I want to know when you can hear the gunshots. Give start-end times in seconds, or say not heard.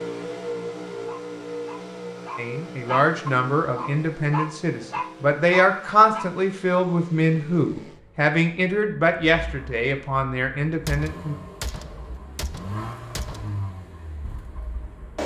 10.8-13.6.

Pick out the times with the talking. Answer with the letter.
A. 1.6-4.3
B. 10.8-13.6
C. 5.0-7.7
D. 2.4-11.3
D.